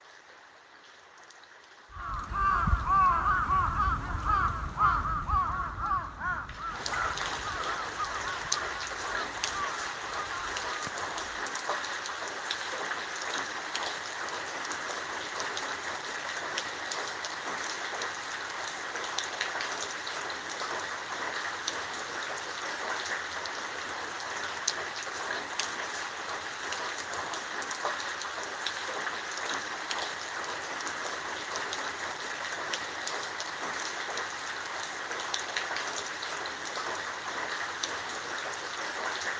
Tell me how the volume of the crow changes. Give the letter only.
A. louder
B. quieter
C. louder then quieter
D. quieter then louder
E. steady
B.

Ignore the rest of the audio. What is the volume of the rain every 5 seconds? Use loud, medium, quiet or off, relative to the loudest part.
quiet, loud, loud, loud, loud, loud, loud, loud.